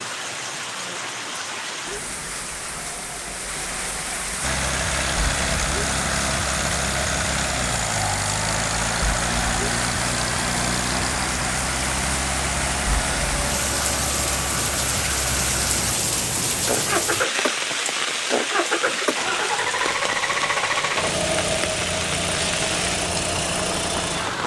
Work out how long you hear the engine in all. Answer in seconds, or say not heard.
20 s.